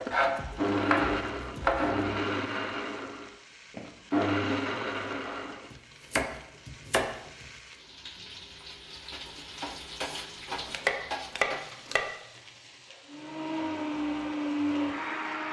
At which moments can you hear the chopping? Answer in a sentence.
You can hear the chopping from 0.1 to 2.0 s, from 5.7 to 7.5 s and from 10.5 to 12.1 s.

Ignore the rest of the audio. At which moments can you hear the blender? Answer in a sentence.
You can hear the blender from 0.0 to 5.7 s and from 13.1 to 15.4 s.